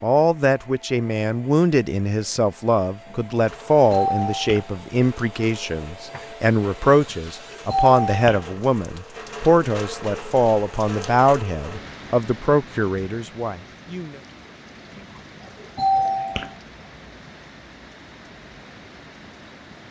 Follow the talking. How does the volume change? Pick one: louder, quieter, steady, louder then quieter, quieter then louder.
steady.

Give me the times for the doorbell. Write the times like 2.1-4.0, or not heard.
3.8-4.8, 6.8-8.5, 14.9-16.6.